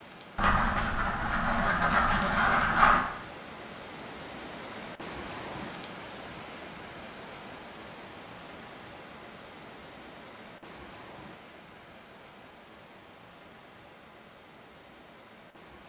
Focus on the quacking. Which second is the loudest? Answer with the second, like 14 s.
3 s.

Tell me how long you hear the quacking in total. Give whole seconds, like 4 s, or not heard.
3 s.